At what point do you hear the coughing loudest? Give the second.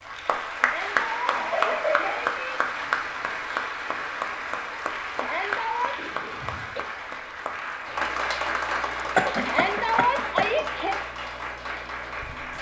9 s.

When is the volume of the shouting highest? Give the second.
10 s.